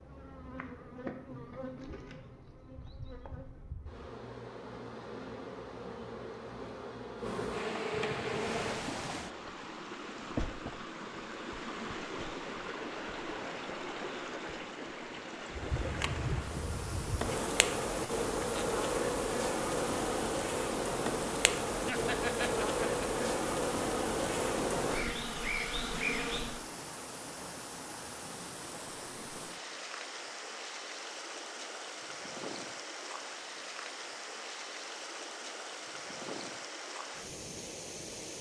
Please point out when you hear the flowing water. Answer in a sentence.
You can hear the flowing water from 8.2 to 38.3 s.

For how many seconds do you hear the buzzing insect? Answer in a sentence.
You can hear the buzzing insect for 20 seconds altogether.